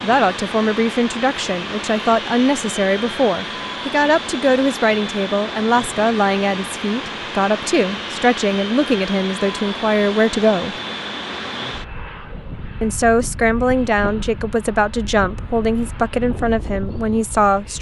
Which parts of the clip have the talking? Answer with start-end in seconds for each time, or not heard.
0.0-10.8, 12.8-17.7.